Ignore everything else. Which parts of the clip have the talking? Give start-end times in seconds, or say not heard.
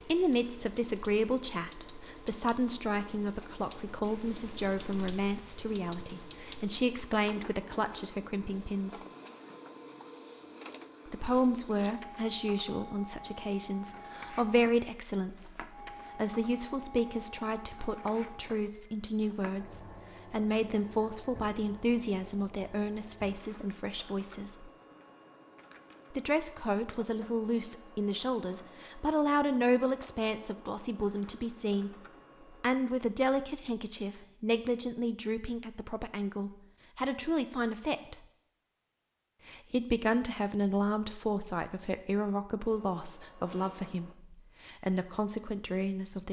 0.0-9.0, 11.1-24.7, 26.1-38.2, 39.5-46.2.